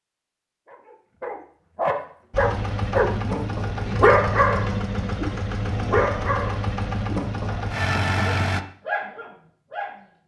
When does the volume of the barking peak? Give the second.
4 s.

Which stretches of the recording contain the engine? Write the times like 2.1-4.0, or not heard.
2.3-8.7.